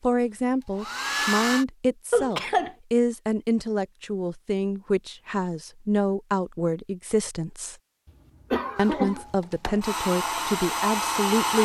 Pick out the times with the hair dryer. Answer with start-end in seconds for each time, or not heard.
0.0-1.6, 8.8-11.6.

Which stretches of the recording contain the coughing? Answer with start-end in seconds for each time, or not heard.
2.1-2.8, 8.5-9.2.